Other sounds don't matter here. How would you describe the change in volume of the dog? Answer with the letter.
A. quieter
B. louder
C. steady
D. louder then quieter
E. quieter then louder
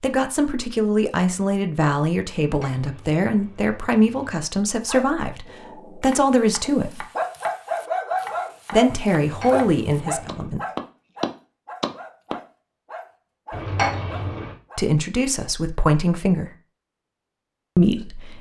D.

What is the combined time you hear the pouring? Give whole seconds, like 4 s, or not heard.
4 s.